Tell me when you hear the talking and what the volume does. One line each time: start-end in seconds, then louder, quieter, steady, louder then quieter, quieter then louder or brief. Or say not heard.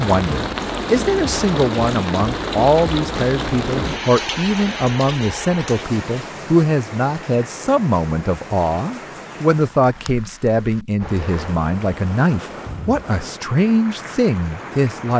0.0-15.1 steady.